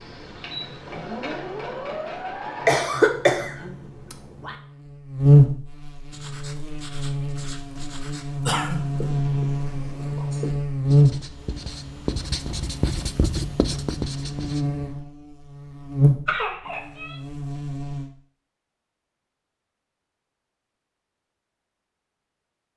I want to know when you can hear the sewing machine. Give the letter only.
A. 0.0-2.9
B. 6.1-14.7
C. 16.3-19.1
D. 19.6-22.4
A.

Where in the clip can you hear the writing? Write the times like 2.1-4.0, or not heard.
6.1-14.7.